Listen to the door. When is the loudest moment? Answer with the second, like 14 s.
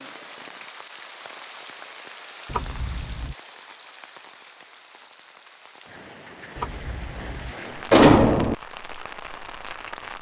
8 s.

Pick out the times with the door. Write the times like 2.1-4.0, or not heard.
2.5-3.4, 6.5-8.6.